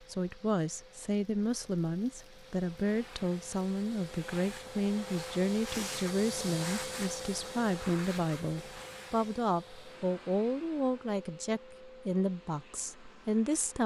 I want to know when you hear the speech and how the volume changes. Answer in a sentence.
The speech can be heard from 0.1 to 13.8 s, at a steady volume.